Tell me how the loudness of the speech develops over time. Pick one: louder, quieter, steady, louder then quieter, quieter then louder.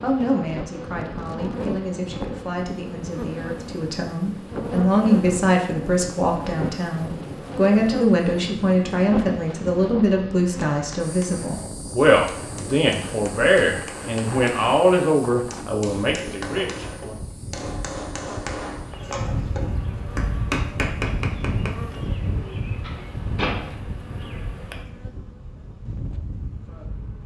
louder.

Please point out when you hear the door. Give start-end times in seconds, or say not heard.
22.3-23.8.